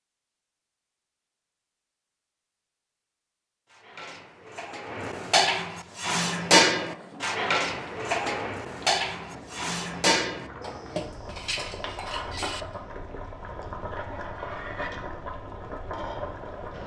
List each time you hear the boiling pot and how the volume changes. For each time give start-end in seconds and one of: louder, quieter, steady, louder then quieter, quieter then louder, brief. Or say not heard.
5.8-16.8 louder.